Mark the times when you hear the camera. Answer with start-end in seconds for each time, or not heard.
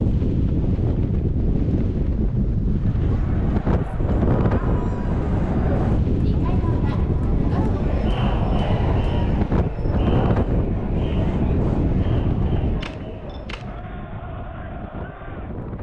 12.8-13.8.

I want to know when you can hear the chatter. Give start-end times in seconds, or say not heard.
2.6-15.7.